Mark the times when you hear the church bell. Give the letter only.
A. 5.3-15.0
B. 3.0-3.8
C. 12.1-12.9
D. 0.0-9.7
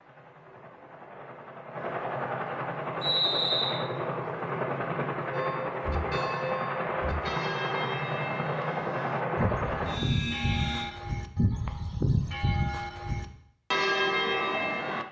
A.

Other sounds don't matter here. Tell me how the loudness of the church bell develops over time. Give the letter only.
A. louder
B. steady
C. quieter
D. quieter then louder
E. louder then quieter
A.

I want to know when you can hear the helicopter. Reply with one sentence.
You can hear the helicopter from 0.0 to 10.9 s.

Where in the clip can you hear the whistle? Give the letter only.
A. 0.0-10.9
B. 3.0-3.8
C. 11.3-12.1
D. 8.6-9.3
B.